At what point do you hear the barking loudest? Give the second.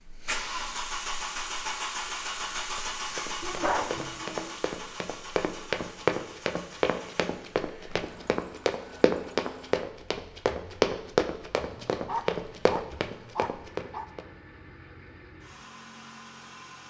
4 s.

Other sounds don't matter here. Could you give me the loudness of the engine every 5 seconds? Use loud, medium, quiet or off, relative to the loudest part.
loud, quiet, quiet, quiet.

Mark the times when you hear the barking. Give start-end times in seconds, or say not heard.
3.4-4.6, 11.8-14.1.